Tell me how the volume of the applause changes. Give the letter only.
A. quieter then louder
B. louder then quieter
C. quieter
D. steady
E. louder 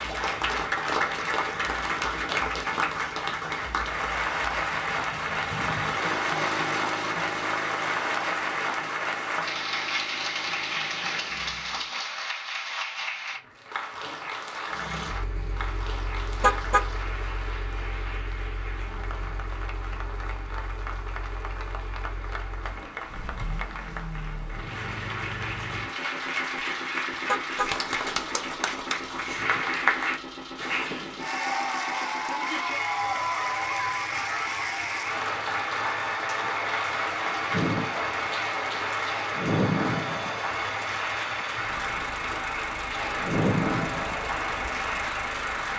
A.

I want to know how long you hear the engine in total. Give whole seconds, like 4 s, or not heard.
43 s.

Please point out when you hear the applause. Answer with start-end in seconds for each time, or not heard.
0.0-45.7.